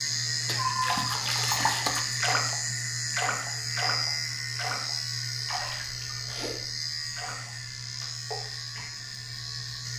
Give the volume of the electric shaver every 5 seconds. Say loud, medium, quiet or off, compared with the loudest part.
loud, medium.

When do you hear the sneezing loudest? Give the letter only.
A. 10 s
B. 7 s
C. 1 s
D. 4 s
C.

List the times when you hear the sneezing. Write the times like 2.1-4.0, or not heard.
0.6-1.2, 5.8-6.7.